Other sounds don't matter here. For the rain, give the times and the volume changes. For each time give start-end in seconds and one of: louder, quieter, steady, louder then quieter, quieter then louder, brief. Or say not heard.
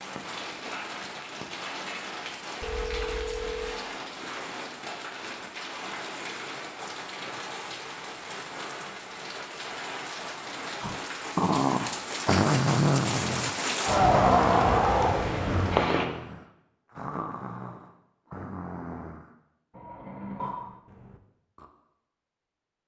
0.0-16.1 louder.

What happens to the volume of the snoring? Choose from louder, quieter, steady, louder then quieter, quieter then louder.
quieter.